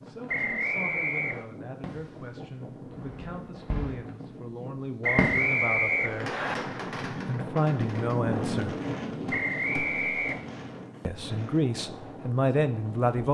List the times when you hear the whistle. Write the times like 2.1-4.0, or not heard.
0.2-1.4, 5.0-6.5, 9.3-10.4.